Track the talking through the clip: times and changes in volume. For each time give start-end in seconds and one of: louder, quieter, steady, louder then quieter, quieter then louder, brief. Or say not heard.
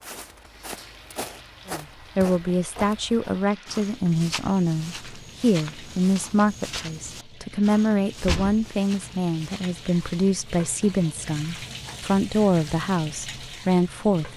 1.6-14.3 steady.